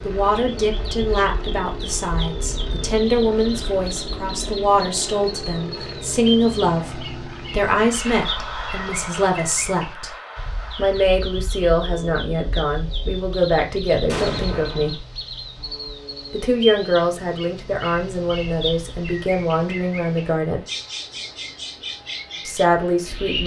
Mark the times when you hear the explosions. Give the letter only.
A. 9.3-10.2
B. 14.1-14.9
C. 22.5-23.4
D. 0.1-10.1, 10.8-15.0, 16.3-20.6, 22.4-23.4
B.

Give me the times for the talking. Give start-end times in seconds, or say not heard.
0.1-10.1, 10.8-15.0, 16.3-20.6, 22.4-23.4.